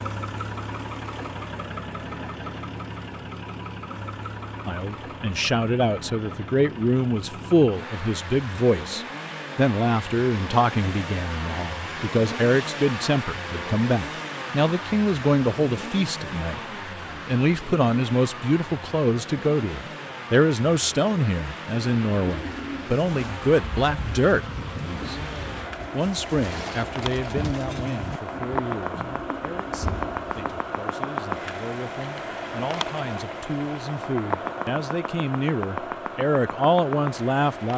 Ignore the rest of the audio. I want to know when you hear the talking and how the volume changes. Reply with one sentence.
The talking can be heard from 4.7 to 16.6 s, at a steady volume; and from 17.2 to 37.7 s, getting quieter then louder.